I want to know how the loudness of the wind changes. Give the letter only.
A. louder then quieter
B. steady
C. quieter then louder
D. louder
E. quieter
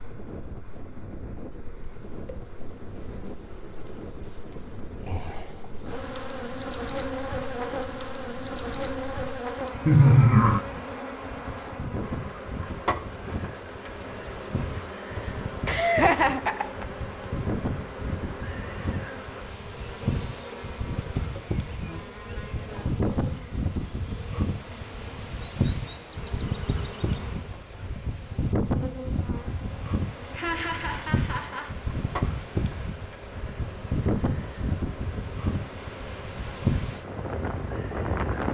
D.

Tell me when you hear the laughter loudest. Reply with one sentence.
The loudest moment of the laughter is at 10 seconds.